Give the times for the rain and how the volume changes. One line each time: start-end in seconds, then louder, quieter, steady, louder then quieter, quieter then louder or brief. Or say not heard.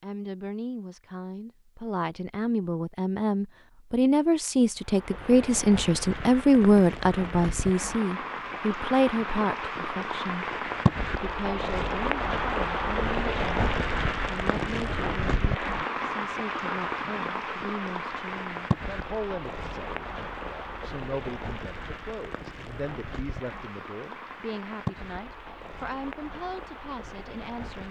4.8-27.8 louder then quieter.